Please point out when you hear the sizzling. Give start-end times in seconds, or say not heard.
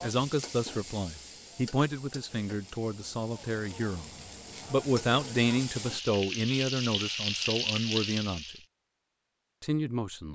0.0-8.7.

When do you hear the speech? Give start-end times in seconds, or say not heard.
0.0-8.6, 9.6-10.3.